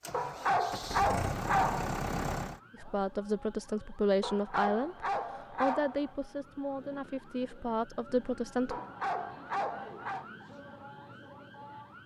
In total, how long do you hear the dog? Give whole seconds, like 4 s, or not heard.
5 s.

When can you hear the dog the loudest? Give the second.
1 s.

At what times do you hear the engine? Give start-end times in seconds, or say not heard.
0.0-2.6.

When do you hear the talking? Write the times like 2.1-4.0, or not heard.
2.8-8.8.